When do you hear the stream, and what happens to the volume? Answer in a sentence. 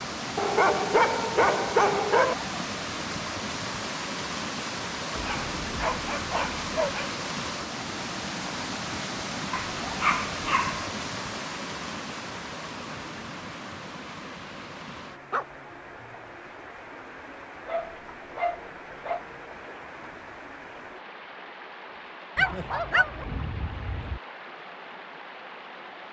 You can hear the stream from 0.0 to 26.0 s, getting quieter.